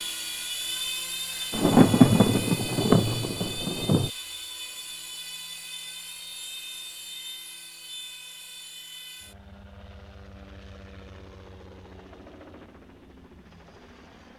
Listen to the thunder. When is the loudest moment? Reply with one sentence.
The loudest moment of the thunder is at 2 seconds.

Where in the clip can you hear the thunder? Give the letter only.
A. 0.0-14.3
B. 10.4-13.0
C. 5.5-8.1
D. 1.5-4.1
D.